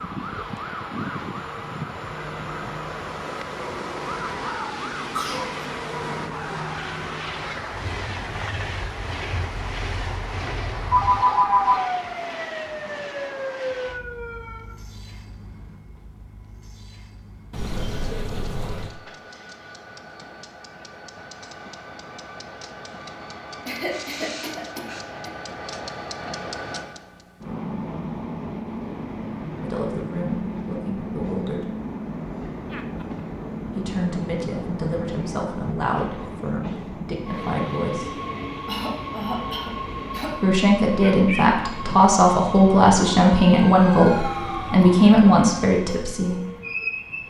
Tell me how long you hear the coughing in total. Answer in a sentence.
You can hear the coughing for 4 seconds altogether.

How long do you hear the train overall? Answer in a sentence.
You can hear the train for 47 seconds altogether.